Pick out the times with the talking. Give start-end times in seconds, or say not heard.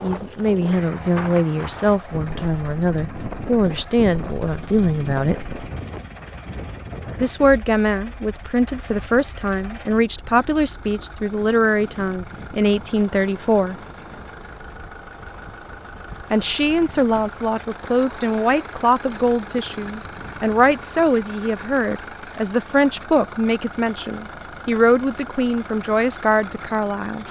0.0-5.5, 7.2-13.8, 16.3-27.2.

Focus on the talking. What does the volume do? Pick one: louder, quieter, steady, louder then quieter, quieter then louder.
steady.